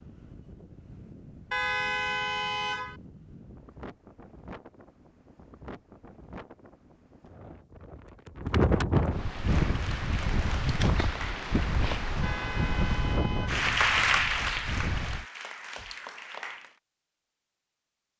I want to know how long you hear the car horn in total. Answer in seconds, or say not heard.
3 s.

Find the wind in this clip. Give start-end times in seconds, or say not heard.
0.0-15.2.